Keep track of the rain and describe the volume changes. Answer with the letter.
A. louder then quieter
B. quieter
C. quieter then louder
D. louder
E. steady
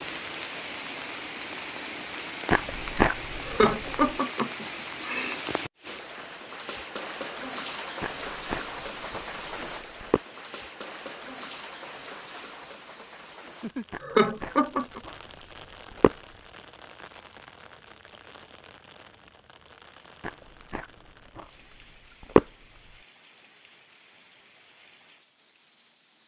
B.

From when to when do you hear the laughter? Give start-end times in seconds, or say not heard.
3.5-5.4, 14.0-15.0.